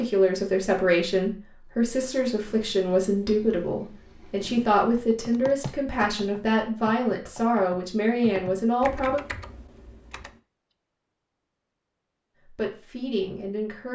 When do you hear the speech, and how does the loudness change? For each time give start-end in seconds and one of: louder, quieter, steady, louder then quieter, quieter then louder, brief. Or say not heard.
0.0-9.2 steady
12.4-13.8 brief.